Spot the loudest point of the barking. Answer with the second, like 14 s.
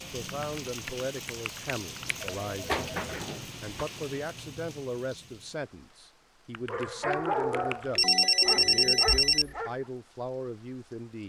7 s.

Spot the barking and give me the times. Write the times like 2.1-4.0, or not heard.
6.7-9.8.